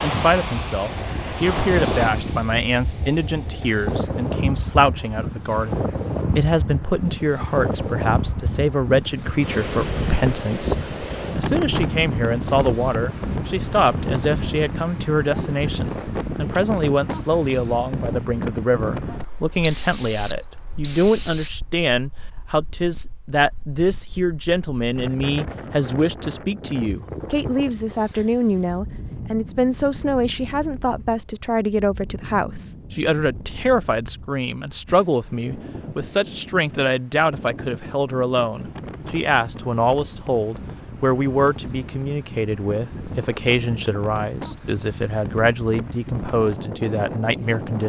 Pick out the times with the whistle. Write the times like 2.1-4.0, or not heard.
19.6-21.5.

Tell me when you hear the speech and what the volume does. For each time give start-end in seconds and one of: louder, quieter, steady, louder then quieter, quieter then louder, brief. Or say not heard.
0.0-47.8 steady.